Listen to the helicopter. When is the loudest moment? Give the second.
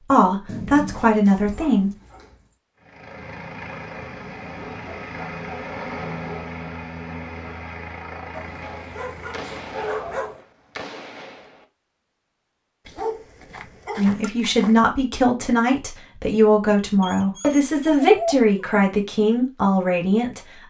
6 s.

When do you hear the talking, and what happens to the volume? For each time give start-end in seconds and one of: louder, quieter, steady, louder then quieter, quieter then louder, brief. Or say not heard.
0.1-1.9 brief
13.9-20.6 steady.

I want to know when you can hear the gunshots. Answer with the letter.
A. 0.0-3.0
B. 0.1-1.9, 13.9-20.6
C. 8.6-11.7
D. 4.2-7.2
C.